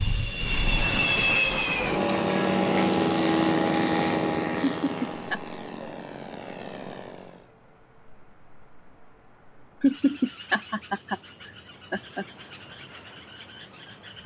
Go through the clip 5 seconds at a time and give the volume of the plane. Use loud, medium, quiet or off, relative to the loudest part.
loud, quiet, off.